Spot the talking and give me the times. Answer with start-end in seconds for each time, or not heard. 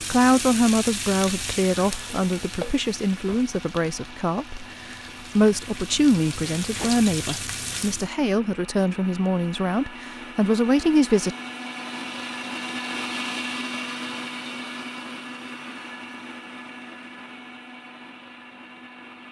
0.1-11.3.